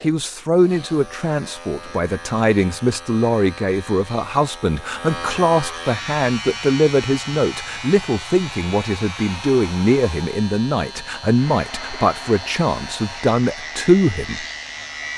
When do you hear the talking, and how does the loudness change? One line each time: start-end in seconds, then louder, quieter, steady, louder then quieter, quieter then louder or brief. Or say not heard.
0.0-14.4 steady.